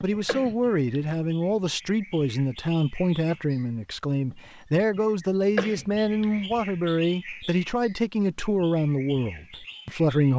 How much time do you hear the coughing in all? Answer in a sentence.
The coughing can be heard for 2 seconds in total.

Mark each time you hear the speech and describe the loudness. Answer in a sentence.
The speech can be heard from 0.0 to 10.3 s, at a steady volume.